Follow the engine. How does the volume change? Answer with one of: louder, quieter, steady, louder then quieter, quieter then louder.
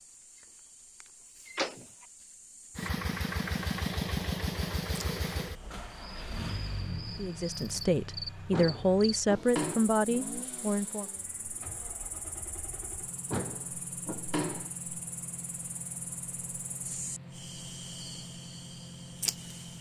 quieter.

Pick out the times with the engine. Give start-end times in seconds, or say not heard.
2.8-19.7.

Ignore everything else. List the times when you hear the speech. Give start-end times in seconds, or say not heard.
7.2-11.1.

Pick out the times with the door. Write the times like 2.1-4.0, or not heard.
1.4-1.9, 8.5-9.8, 13.3-14.7.